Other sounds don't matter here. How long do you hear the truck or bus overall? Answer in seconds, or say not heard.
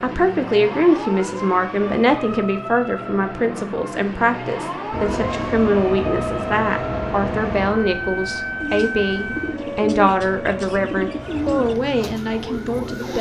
7 s.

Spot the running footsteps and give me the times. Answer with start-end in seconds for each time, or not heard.
not heard.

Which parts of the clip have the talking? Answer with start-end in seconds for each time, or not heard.
0.0-13.1.